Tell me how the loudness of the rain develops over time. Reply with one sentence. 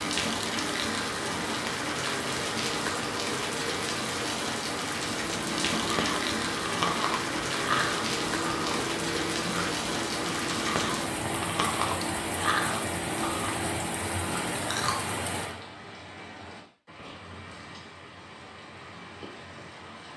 The loudness of the rain goes down.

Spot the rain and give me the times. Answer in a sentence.
You can hear the rain from 0.0 to 20.1 s.